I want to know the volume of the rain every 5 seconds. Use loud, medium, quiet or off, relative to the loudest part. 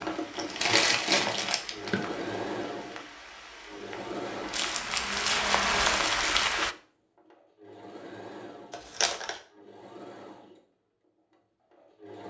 quiet, loud, off.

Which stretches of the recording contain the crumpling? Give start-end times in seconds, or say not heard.
0.3-2.2, 4.5-6.5, 8.7-9.4.